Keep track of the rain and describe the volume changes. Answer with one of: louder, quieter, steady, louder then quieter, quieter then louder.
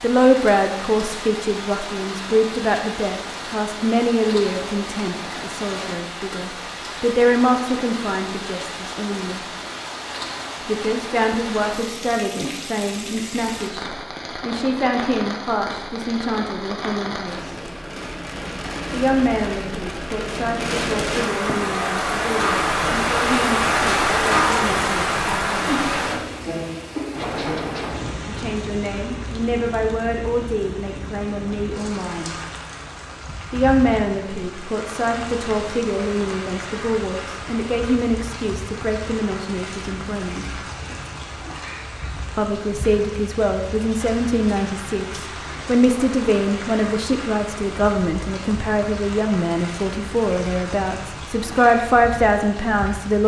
louder then quieter.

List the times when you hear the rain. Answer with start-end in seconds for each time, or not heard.
0.0-53.2.